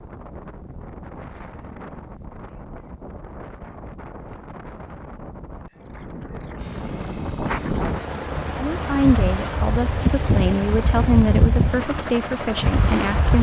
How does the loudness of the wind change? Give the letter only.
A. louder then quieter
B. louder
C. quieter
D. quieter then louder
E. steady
B.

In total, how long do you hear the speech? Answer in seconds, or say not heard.
5 s.